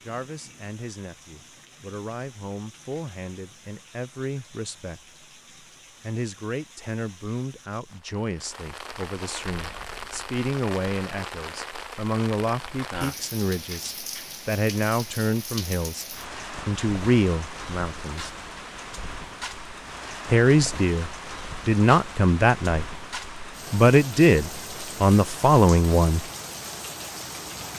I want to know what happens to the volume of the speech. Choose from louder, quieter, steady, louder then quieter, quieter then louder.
louder.